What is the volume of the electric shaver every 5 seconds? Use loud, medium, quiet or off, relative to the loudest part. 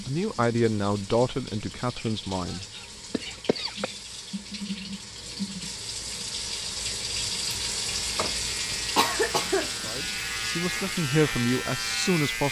off, medium, loud.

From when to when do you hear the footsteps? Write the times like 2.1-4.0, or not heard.
not heard.